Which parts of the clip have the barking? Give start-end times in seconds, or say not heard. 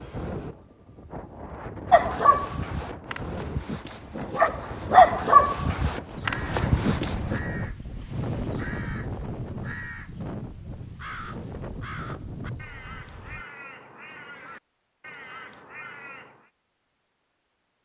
1.9-7.4.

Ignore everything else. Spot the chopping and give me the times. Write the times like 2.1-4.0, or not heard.
not heard.